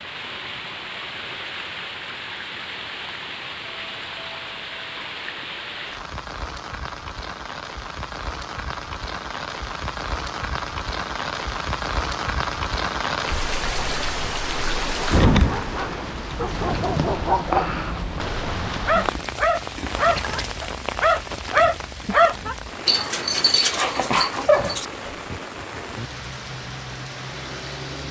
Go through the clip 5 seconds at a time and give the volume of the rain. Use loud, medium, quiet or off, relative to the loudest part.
medium, medium, loud, loud, medium, medium.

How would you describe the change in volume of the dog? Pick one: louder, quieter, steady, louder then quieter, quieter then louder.
louder.